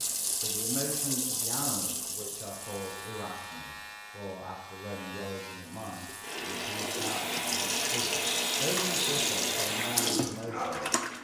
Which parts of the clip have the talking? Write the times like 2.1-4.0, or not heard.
0.0-10.9.